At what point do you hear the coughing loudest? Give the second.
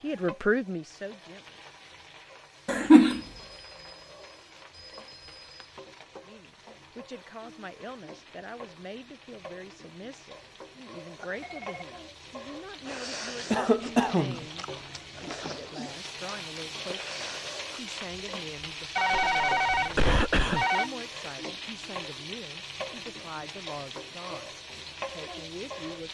3 s.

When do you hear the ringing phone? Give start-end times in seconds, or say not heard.
3.0-5.7, 11.2-11.8, 18.9-20.9.